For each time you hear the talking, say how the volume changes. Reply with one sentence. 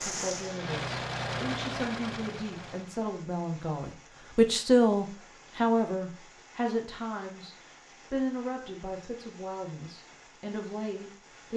The talking can be heard from 0.0 to 11.5 s, getting louder then quieter.